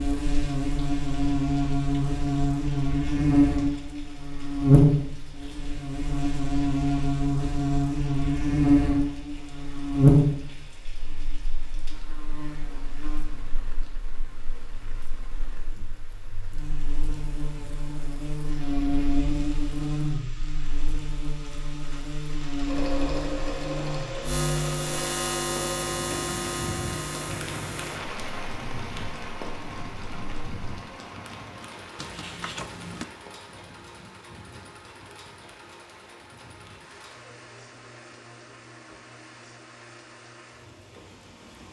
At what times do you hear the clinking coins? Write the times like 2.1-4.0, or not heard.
31.9-33.0.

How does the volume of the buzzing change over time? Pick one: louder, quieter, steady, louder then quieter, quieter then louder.
quieter then louder.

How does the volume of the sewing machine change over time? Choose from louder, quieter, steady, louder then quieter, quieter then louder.
quieter.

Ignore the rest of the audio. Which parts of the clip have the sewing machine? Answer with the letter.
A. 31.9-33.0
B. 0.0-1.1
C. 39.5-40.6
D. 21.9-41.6
D.